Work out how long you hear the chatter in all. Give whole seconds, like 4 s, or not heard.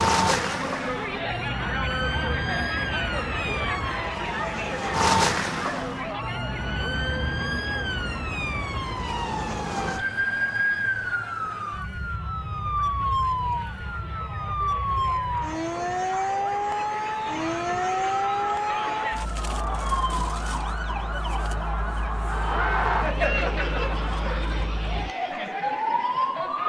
26 s.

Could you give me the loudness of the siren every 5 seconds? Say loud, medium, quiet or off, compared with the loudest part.
loud, loud, loud, loud, medium, loud.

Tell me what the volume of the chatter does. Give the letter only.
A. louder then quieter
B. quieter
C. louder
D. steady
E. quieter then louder
E.